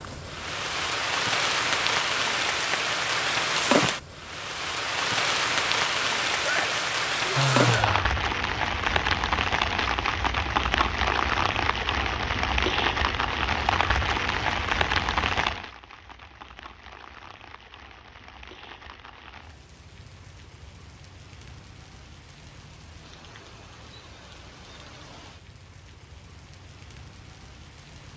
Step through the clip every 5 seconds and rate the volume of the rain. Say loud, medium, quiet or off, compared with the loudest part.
loud, loud, loud, medium, quiet, quiet.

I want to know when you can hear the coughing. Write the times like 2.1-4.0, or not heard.
not heard.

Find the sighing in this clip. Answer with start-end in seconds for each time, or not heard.
6.5-8.1.